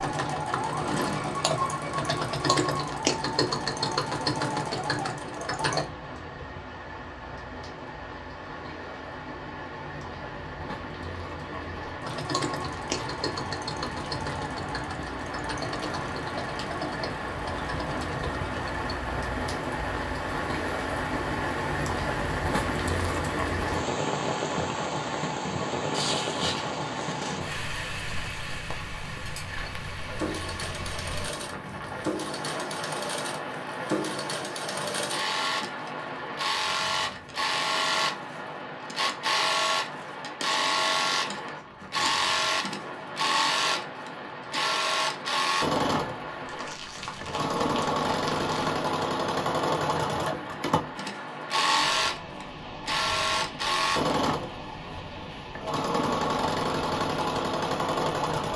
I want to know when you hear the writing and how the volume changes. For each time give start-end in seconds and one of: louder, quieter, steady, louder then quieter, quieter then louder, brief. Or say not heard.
not heard.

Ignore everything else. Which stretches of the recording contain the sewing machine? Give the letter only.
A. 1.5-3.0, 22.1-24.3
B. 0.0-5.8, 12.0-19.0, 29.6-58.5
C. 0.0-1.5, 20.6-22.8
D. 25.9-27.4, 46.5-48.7
B.